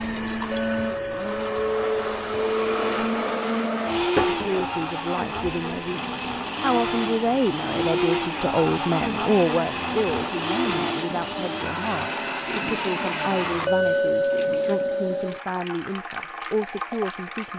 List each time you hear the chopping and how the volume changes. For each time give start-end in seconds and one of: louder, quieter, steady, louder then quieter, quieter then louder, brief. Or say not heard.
not heard.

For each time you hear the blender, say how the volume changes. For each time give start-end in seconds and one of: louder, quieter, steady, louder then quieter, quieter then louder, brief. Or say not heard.
0.0-13.7 steady.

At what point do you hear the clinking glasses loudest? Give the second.
14 s.